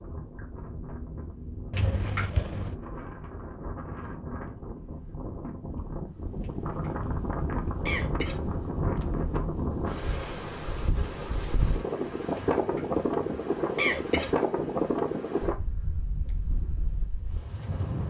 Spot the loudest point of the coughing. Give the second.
14 s.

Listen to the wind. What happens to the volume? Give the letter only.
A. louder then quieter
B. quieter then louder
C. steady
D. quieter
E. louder
E.